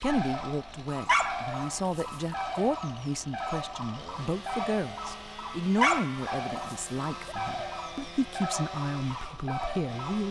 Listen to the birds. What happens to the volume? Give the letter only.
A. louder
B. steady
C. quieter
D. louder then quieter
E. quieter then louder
B.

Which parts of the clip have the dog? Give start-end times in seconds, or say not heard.
1.1-2.6, 5.8-7.3.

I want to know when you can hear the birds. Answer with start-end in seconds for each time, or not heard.
0.0-10.2.